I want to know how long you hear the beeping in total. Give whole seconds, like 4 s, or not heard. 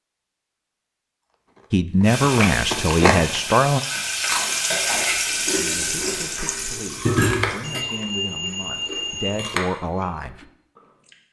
2 s.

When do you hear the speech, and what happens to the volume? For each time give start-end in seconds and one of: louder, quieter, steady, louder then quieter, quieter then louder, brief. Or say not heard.
1.7-3.8 brief
5.5-10.4 louder.